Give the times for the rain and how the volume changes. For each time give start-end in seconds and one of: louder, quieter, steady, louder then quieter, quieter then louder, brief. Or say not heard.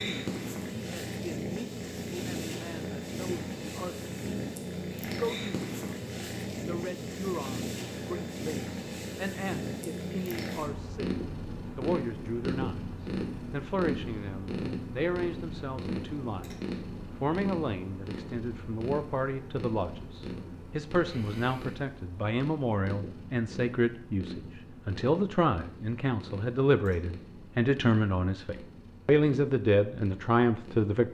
not heard.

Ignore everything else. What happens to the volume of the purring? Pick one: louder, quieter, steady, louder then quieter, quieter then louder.
quieter.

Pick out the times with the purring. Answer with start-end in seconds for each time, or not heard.
0.0-30.9.